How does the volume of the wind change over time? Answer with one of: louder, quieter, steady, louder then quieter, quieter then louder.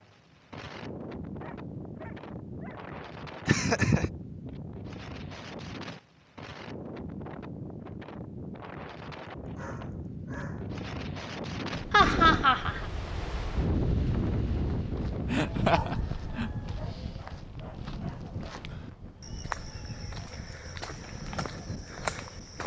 louder then quieter.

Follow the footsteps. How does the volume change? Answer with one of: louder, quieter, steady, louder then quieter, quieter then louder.
louder.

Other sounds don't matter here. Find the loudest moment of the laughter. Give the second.
12 s.